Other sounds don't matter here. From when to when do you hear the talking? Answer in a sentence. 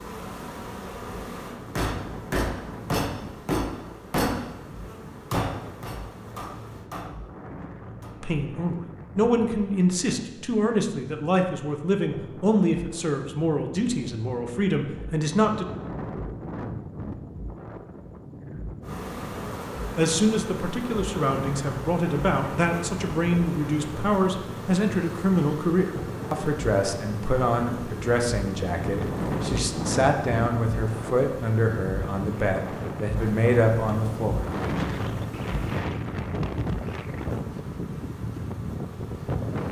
The talking can be heard from 8.2 to 15.7 s and from 19.9 to 34.5 s.